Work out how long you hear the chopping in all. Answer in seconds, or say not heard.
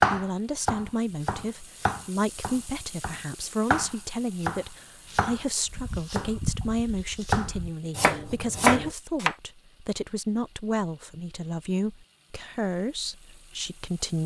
9 s.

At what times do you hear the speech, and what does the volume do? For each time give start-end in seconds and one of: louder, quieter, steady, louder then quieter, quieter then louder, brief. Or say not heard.
0.0-14.2 steady.